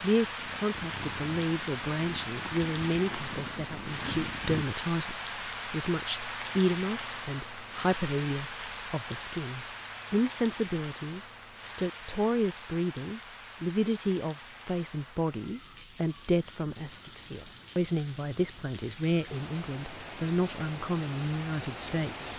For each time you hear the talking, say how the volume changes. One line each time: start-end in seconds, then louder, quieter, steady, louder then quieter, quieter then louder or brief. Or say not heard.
0.0-22.3 steady.